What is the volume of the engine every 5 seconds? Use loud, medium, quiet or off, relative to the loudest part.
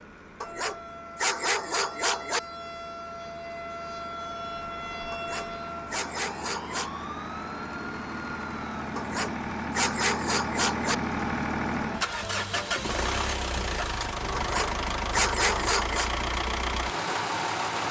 quiet, medium, loud, loud.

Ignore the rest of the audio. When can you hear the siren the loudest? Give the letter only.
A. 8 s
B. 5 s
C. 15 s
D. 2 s
B.